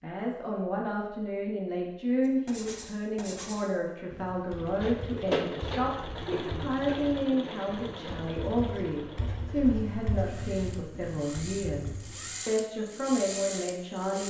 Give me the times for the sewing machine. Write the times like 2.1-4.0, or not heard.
4.5-14.2.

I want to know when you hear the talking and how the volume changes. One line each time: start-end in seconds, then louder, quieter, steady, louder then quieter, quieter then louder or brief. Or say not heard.
0.0-14.2 steady.